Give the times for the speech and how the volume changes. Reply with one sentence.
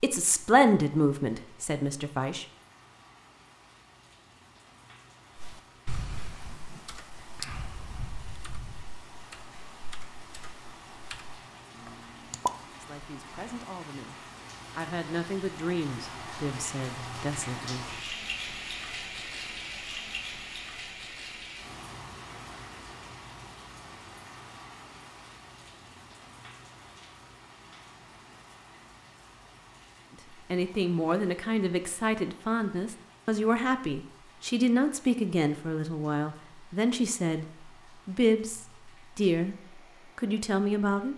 The speech can be heard briefly from 0.0 to 2.5 s; from 12.7 to 17.9 s, getting louder; from 30.5 to 39.5 s, at a steady volume; and briefly from 40.1 to 41.1 s.